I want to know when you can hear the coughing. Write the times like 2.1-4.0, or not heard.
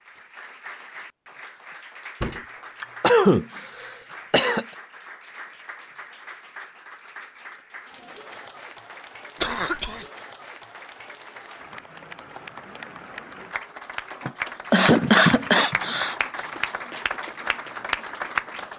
2.2-4.7, 9.4-10.1, 14.2-16.1.